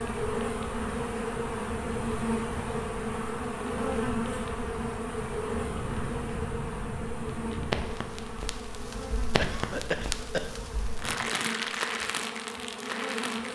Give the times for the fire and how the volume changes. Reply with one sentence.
The fire can be heard from 0.0 to 13.5 s, getting louder.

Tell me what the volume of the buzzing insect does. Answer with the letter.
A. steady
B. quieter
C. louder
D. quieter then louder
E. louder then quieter
B.